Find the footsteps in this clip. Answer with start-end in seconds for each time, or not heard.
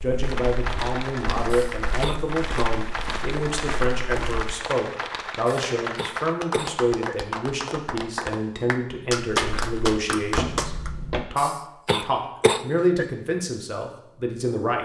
0.0-4.5, 9.3-11.2.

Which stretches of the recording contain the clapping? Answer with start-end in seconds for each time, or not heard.
0.2-10.9.